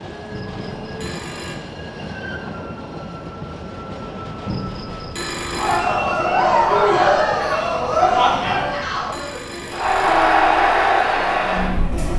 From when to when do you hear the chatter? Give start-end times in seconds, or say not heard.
5.5-12.1.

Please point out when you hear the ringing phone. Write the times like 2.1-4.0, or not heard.
0.3-1.6, 4.5-5.8, 8.4-10.3.